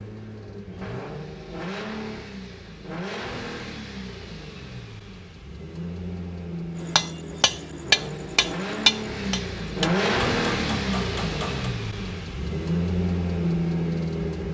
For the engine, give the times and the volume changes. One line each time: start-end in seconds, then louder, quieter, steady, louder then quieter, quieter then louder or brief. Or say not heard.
0.0-14.5 louder.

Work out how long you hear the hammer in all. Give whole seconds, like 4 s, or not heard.
5 s.